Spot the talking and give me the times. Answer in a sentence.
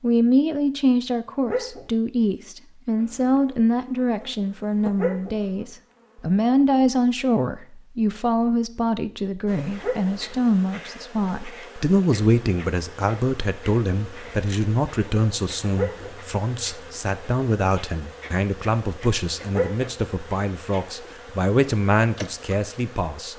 You can hear the talking from 0.0 to 23.3 s.